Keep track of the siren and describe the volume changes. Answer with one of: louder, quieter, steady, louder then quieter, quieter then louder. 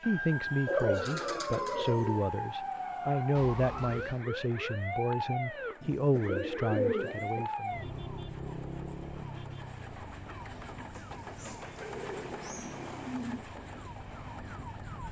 quieter.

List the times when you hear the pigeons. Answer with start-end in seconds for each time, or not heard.
0.7-2.2, 5.8-7.5, 10.9-13.4.